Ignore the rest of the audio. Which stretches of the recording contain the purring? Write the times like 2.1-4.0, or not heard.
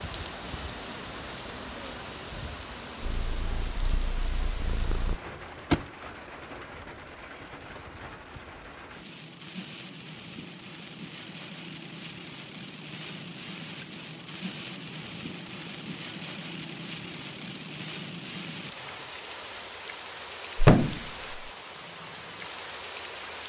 3.0-5.2.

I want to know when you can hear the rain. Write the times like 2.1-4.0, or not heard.
0.0-23.4.